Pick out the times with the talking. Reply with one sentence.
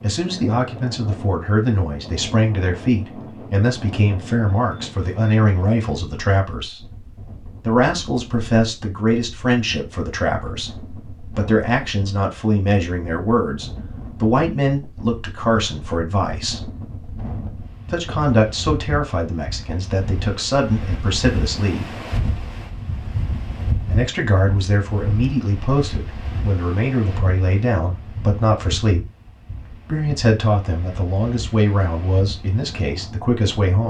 The talking can be heard from 0.0 to 6.9 s, from 7.6 to 16.6 s, from 17.9 to 21.9 s, from 23.9 to 29.1 s and from 29.9 to 33.8 s.